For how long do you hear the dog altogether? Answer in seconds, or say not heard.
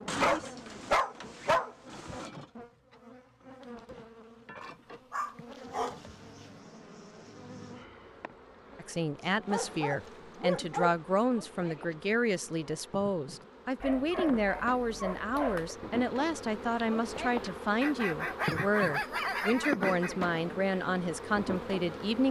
10 s.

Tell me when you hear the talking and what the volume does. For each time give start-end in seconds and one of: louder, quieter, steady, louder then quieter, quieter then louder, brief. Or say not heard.
8.8-22.2 steady.